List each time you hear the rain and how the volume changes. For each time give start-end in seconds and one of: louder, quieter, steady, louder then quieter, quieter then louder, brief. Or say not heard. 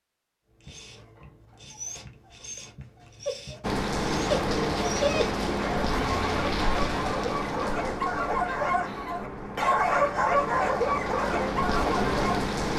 3.6-12.7 quieter then louder.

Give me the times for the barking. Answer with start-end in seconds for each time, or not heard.
0.7-12.4.